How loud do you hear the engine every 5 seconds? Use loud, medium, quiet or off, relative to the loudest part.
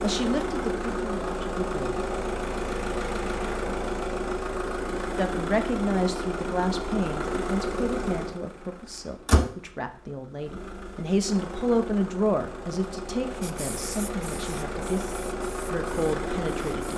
loud, loud, medium, loud.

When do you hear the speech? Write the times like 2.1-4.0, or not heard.
0.0-1.9, 5.2-16.9.